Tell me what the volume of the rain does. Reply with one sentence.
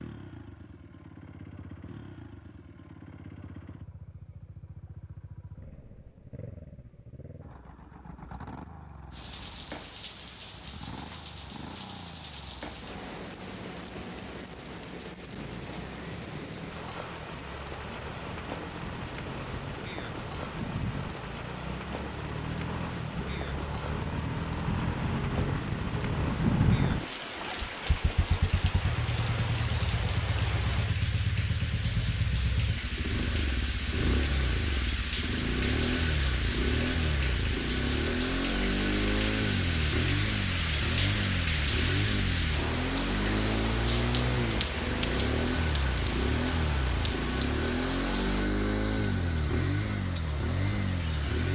The loudness of the rain goes up.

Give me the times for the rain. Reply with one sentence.
You can hear the rain from 9.1 to 51.5 s.